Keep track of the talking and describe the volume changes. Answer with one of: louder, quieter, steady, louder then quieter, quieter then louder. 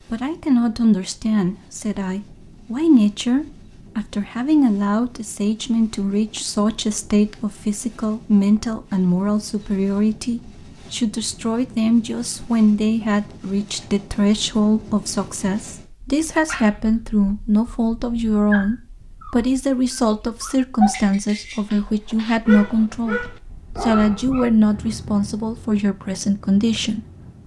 steady.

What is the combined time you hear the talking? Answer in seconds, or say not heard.
26 s.